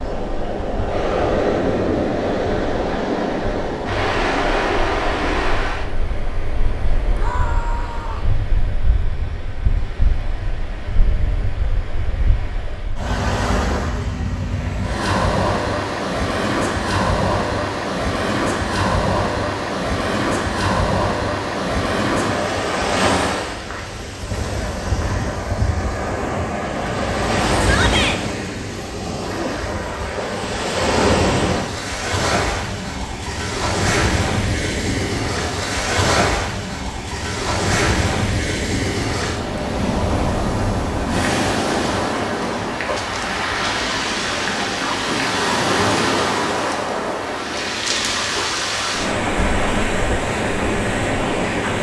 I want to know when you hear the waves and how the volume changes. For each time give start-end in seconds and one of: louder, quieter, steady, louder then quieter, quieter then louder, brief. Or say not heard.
0.0-51.7 steady.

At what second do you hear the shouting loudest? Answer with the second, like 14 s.
28 s.